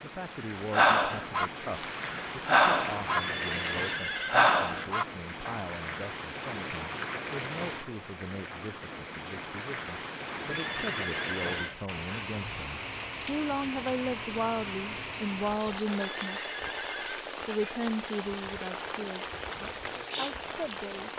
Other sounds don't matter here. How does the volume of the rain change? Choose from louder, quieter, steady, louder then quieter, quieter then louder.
steady.